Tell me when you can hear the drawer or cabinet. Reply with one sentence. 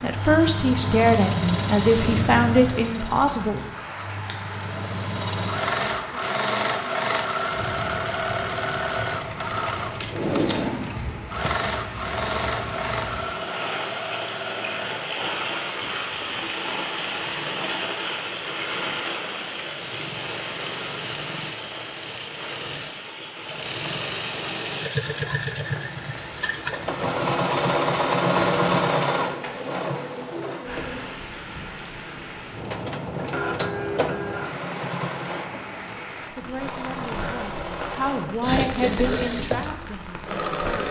You can hear the drawer or cabinet from 10.1 to 11.4 s.